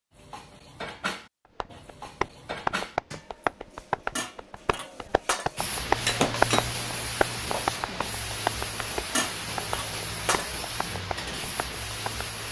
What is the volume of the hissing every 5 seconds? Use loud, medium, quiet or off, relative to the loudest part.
off, loud, loud.